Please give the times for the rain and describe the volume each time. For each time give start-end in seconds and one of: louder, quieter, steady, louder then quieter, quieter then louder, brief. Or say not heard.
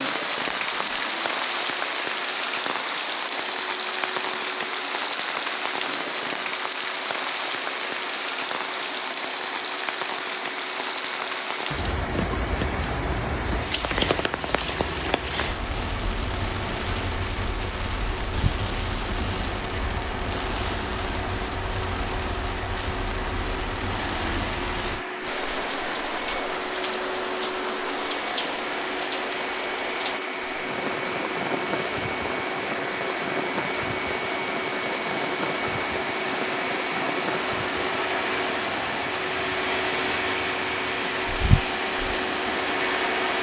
0.0-43.3 quieter.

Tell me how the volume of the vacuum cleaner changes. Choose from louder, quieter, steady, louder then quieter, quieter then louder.
louder.